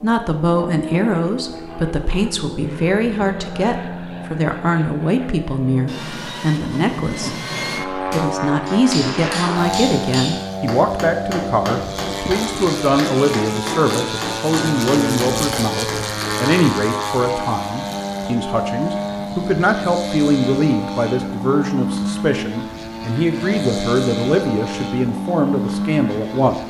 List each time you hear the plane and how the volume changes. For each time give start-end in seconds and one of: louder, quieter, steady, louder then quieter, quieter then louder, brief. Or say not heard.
0.0-26.6 louder.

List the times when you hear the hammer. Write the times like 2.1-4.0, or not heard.
8.1-16.4.